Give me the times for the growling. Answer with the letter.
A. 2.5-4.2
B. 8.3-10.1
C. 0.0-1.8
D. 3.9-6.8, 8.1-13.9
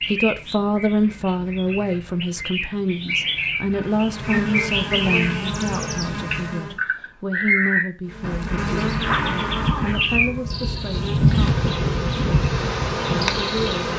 B.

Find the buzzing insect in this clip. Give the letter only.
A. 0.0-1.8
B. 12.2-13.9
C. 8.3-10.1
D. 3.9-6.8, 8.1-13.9
D.